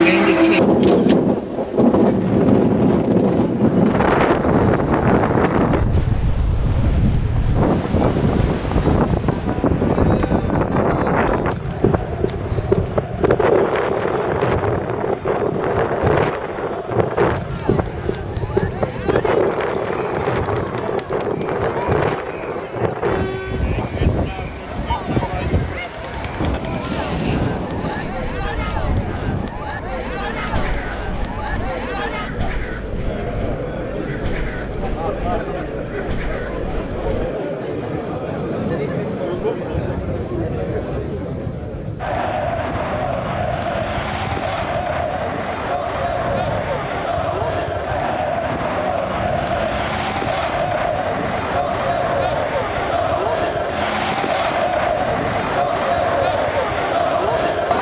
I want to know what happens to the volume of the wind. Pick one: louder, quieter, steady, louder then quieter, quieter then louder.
quieter.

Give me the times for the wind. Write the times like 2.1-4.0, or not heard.
0.0-57.7.